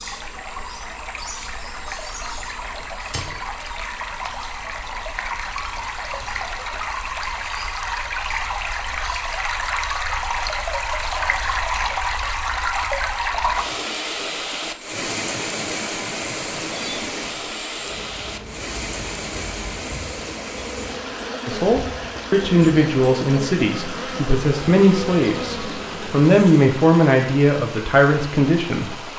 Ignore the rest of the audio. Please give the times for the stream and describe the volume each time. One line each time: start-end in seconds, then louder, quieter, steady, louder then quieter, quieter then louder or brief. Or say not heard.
0.0-29.1 louder then quieter.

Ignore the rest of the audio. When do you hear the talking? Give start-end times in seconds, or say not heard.
21.4-28.9.